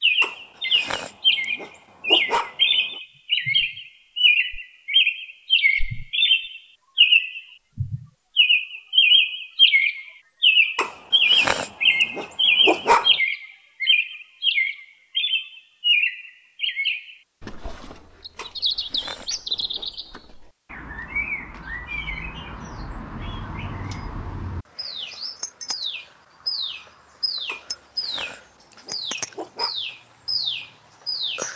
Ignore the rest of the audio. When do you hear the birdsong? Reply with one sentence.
You can hear the birdsong from 0.0 to 31.5 s.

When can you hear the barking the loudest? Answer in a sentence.
The loudest moment of the barking is at 13 seconds.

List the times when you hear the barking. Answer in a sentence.
You can hear the barking from 0.2 to 3.0 s, from 10.8 to 13.2 s, from 18.4 to 19.9 s and from 27.4 to 29.8 s.